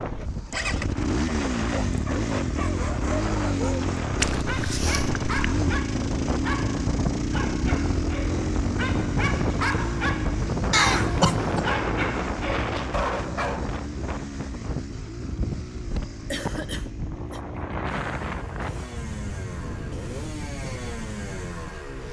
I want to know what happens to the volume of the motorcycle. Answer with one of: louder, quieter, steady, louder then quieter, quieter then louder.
quieter.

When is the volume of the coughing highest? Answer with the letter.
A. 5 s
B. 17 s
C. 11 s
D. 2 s
C.